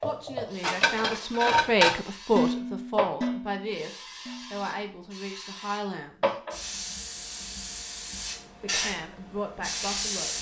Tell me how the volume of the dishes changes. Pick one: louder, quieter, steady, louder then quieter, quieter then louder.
louder then quieter.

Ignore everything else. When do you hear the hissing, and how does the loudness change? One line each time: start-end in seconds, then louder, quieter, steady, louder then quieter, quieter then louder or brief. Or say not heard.
0.5-10.3 louder.